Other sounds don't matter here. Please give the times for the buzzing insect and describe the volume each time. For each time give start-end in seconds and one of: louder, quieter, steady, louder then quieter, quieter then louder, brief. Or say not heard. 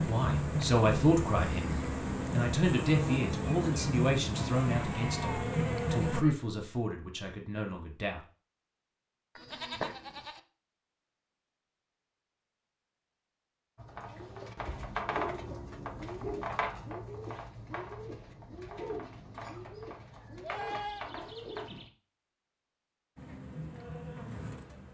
0.0-6.2 steady
23.1-24.8 brief.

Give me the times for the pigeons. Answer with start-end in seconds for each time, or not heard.
13.8-21.9.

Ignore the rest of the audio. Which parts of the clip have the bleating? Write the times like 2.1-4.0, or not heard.
4.3-6.3, 9.3-10.4, 19.4-21.1.